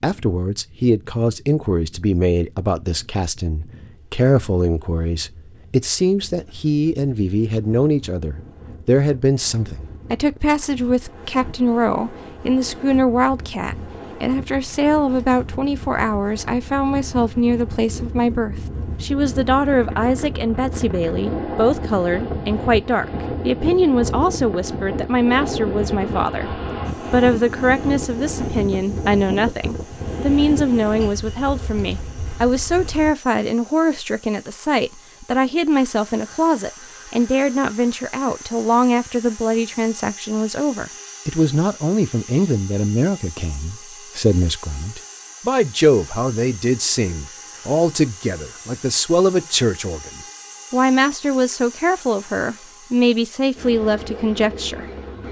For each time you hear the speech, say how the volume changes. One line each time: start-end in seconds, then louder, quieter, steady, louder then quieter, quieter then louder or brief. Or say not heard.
0.0-55.2 steady.